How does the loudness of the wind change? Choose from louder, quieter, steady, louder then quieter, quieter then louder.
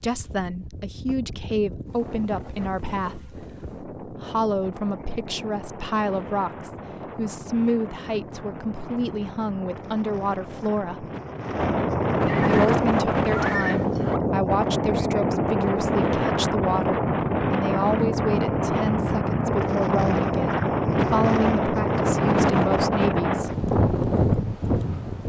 louder.